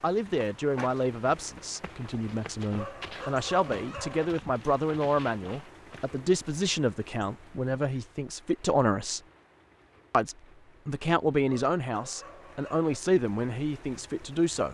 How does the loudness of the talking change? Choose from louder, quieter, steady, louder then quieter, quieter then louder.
steady.